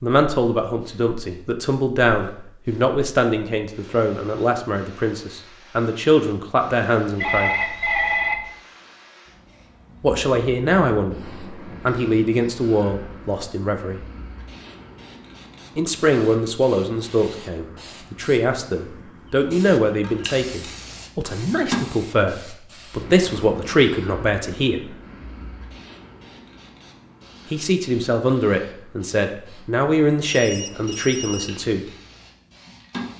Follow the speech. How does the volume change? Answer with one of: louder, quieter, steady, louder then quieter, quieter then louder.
steady.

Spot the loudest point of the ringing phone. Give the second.
8 s.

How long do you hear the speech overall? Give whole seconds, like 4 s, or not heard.
25 s.